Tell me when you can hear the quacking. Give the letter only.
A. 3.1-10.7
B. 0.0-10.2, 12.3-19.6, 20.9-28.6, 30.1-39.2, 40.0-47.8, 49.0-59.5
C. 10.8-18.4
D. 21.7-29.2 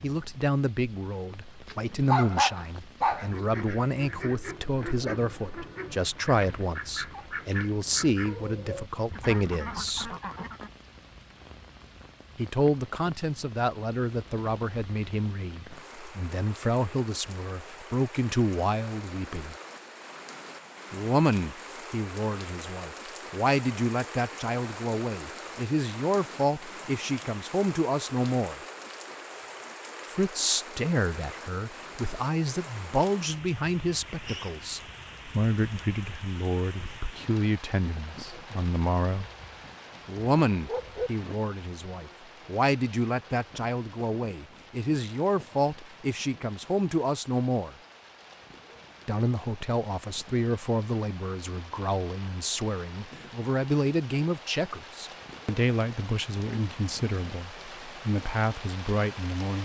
A.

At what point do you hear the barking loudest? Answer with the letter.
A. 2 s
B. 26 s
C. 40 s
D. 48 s
A.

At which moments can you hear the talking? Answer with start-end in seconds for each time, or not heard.
0.0-10.2, 12.3-19.6, 20.9-28.6, 30.1-39.2, 40.0-47.8, 49.0-59.5.